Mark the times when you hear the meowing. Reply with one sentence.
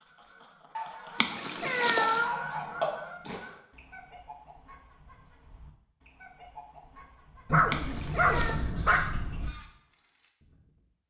The meowing can be heard from 1.1 to 2.3 s and from 7.7 to 8.6 s.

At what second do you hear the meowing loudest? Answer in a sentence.
The volume of the meowing peaks at 2 seconds.